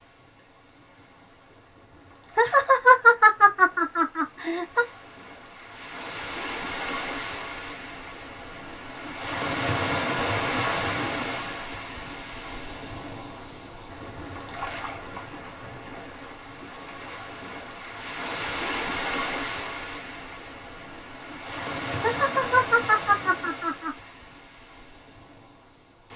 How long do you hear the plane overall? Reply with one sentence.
You can't hear the plane here.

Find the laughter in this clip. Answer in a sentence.
You can hear the laughter from 2.4 to 4.8 s and from 22.0 to 23.9 s.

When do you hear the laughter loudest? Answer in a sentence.
The volume of the laughter peaks at 3 seconds.